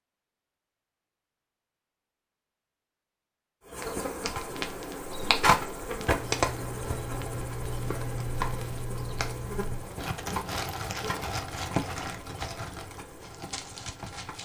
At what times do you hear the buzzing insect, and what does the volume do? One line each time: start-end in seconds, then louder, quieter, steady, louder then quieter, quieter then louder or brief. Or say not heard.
3.7-14.3 quieter.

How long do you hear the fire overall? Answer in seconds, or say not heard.
10 s.